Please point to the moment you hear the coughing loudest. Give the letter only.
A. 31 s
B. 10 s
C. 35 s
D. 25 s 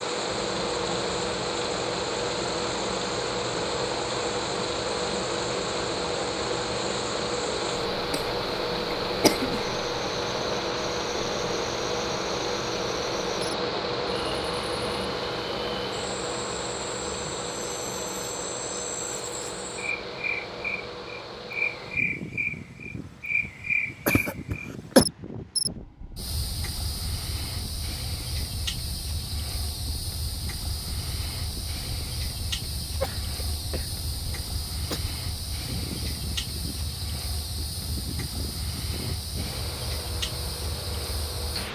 D.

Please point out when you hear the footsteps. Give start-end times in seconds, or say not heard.
not heard.